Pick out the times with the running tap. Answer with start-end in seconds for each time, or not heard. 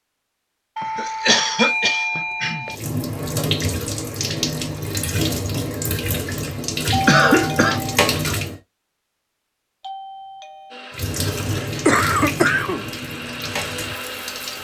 2.6-8.6, 10.9-14.6.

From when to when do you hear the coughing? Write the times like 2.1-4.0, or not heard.
0.9-2.6, 6.6-7.8, 11.4-12.8.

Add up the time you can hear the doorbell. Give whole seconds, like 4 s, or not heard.
4 s.